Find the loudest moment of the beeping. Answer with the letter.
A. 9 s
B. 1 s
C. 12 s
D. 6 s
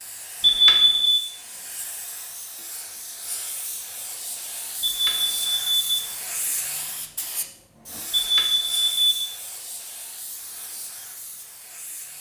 B.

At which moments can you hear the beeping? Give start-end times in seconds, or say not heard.
0.4-1.2, 4.8-6.1, 8.1-9.3.